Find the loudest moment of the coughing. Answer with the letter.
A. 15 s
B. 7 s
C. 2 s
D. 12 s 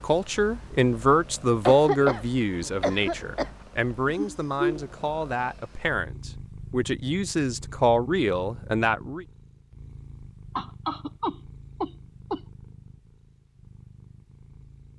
C.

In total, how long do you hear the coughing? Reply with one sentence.
You can hear the coughing for 4 seconds altogether.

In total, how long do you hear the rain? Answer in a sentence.
You can't hear the rain here.